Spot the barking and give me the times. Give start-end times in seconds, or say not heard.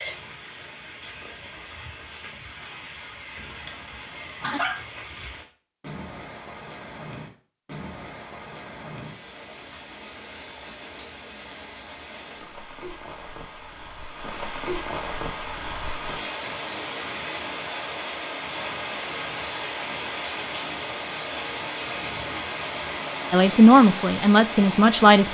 3.4-4.8.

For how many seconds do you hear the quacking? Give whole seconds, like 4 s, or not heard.
not heard.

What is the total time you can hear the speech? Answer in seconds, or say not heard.
2 s.